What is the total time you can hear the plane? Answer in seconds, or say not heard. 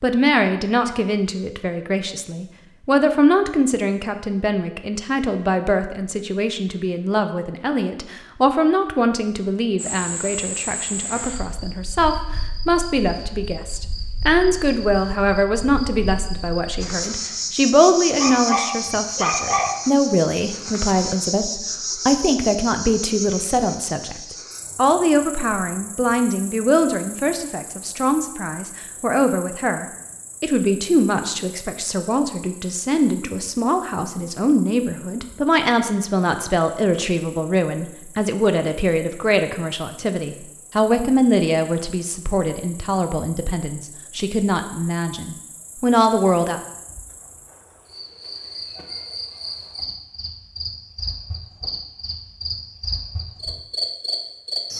not heard.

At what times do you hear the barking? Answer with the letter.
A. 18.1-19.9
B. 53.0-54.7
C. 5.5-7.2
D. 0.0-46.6
A.